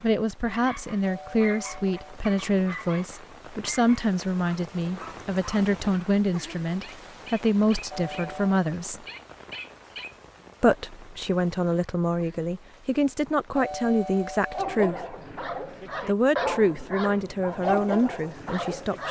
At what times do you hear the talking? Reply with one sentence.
You can hear the talking from 0.0 to 9.0 s, from 10.6 to 15.2 s and from 16.1 to 19.0 s.